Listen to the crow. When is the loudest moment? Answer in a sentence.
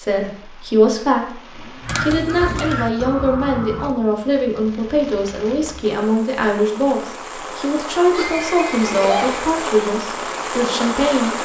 The volume of the crow peaks at 2 seconds.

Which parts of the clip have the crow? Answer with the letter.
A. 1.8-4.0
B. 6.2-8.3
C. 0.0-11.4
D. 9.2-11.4
A.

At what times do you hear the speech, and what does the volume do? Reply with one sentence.
You can hear the speech from 0.0 to 11.4 s, at a steady volume.